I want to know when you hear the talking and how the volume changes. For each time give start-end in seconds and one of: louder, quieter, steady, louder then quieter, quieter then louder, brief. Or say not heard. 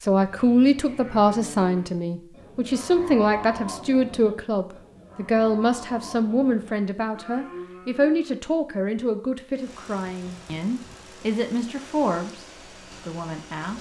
0.0-13.7 quieter.